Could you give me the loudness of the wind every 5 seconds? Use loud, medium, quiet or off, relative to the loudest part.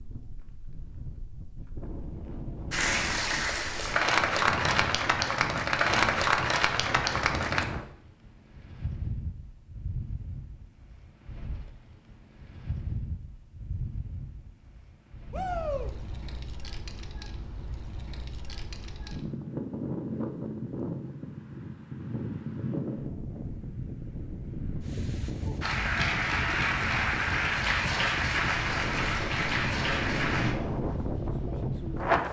medium, medium, quiet, medium, medium, medium, loud.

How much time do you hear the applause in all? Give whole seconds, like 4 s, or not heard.
10 s.